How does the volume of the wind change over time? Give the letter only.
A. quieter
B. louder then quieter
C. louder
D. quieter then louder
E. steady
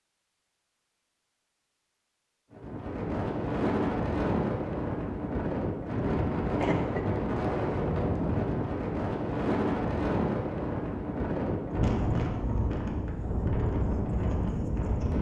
E.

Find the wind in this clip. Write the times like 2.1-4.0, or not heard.
2.5-15.1.